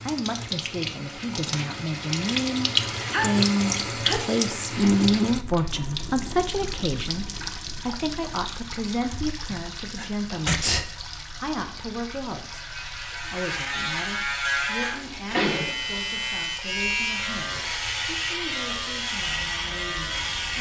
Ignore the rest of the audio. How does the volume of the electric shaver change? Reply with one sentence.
The volume of the electric shaver stays about the same.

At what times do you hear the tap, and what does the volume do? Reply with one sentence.
You can hear the tap from 0.0 to 20.5 s, getting quieter.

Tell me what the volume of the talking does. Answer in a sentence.
The volume of the talking goes down.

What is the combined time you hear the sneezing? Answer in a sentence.
The sneezing can be heard for 4 seconds in total.